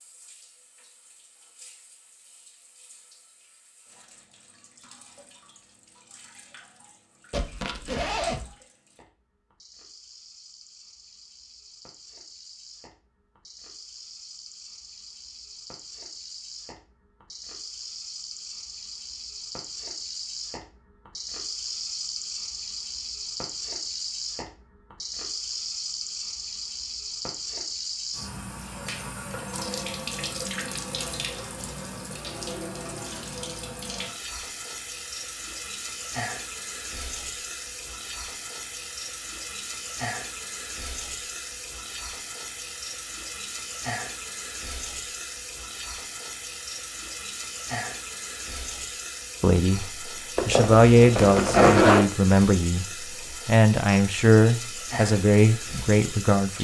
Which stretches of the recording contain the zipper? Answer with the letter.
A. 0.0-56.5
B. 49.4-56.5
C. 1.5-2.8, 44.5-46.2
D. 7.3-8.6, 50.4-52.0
D.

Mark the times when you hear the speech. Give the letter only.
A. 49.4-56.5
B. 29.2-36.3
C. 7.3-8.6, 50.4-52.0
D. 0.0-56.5
A.